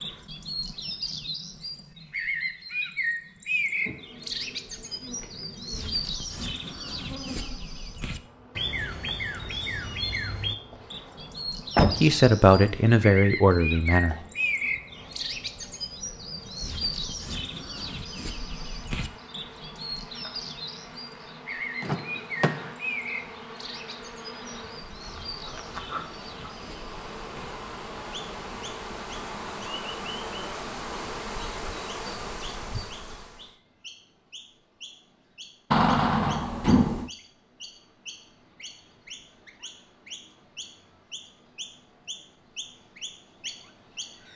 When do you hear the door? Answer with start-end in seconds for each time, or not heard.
11.8-12.2, 21.8-22.8, 35.7-37.1.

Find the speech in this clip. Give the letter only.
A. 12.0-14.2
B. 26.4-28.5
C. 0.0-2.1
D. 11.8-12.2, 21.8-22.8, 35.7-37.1
A.